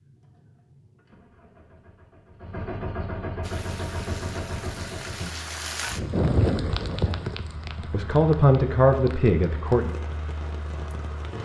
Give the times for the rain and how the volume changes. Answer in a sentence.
You can hear the rain from 3.4 to 11.4 s, getting louder then quieter.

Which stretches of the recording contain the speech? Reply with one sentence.
You can hear the speech from 7.9 to 9.9 s.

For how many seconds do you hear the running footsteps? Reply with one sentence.
You can't hear the running footsteps here.